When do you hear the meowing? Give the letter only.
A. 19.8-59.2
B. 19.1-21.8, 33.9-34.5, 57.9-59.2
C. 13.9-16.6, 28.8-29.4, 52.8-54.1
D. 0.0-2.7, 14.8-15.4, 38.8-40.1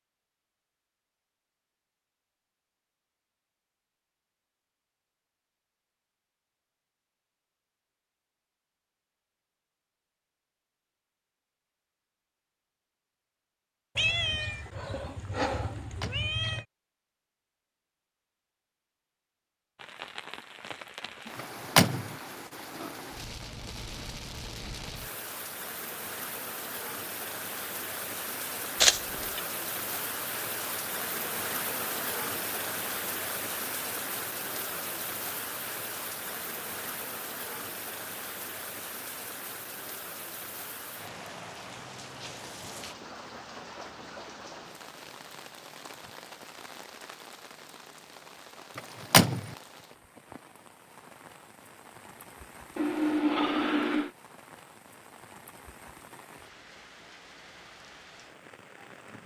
C.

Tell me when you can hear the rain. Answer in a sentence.
The rain can be heard from 19.8 to 59.2 s.